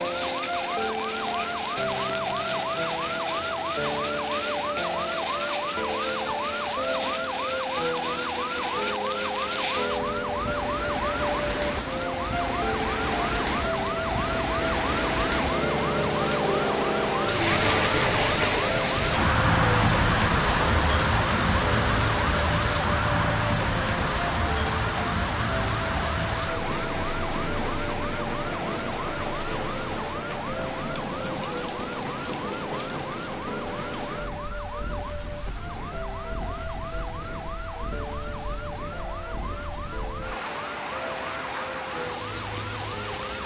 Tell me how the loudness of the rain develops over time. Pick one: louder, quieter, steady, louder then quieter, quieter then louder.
louder then quieter.